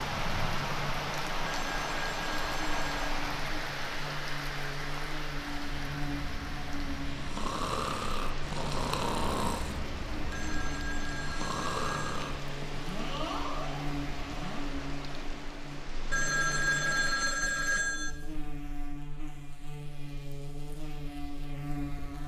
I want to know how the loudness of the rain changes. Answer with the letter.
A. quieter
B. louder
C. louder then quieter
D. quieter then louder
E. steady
A.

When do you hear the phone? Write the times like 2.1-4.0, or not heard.
1.4-3.0, 10.3-12.3, 16.1-18.1.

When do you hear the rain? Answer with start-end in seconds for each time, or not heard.
0.0-17.5.